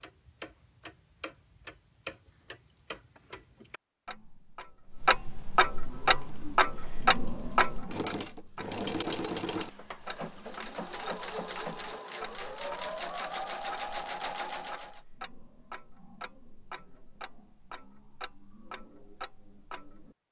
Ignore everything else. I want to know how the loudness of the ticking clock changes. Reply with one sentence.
The loudness of the ticking clock goes up, then down.